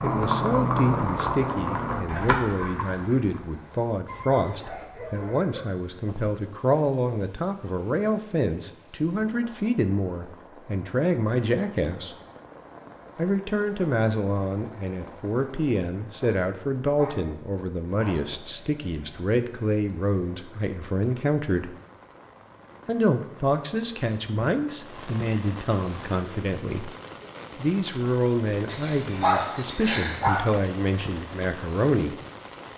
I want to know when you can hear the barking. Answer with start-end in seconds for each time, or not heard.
4.0-5.7, 16.2-18.2, 28.6-30.4.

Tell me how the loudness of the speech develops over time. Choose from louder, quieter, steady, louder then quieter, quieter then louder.
steady.